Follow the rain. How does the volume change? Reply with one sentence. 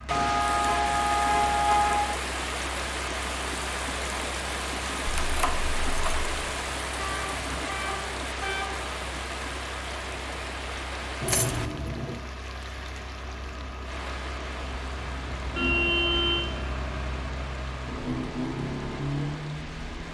The volume of the rain goes down.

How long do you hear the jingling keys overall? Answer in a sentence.
The jingling keys can be heard for 2 seconds in total.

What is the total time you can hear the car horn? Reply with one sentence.
The car horn can be heard for 5 seconds in total.